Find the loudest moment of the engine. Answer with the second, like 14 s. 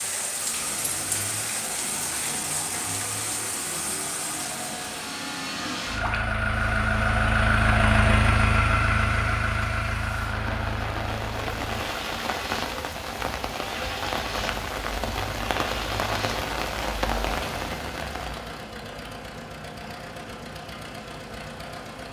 8 s.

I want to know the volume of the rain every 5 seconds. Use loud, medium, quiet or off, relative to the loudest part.
loud, medium, loud, loud, off.